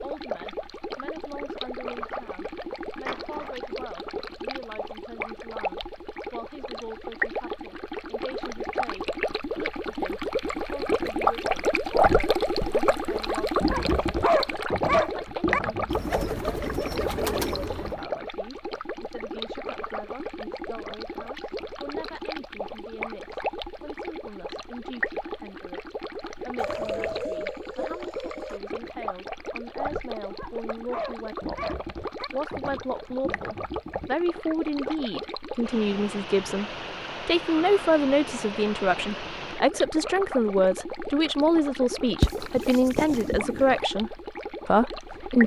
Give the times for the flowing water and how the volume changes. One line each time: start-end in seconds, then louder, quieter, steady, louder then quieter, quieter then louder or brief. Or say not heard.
0.0-45.4 louder then quieter.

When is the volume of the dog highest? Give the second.
14 s.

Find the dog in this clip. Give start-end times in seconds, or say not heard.
13.6-15.6, 30.3-32.3.